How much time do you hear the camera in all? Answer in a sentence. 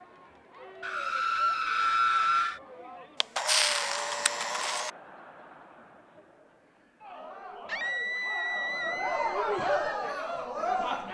The camera can be heard for 2 seconds in total.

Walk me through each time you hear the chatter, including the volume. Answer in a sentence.
You can hear the chatter from 0.0 to 11.1 s, getting louder.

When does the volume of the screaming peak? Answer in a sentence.
The volume of the screaming peaks at 2 seconds.